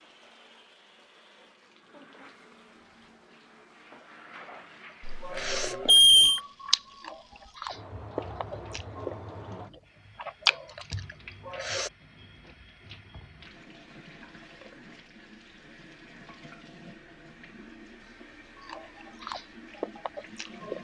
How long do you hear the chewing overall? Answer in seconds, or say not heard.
9 s.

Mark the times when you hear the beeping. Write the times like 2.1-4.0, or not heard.
5.0-6.4.